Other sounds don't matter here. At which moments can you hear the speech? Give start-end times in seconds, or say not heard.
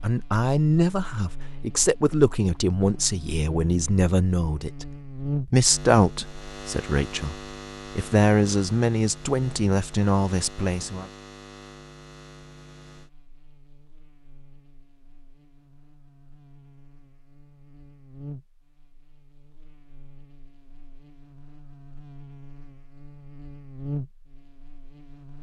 0.0-7.3, 8.0-11.1.